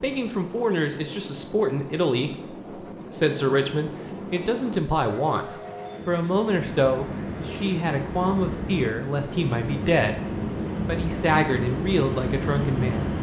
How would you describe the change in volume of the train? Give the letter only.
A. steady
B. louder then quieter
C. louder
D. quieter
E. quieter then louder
C.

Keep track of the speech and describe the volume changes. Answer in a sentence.
The volume of the speech stays about the same.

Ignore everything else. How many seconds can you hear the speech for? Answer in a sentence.
The speech can be heard for 13 seconds in total.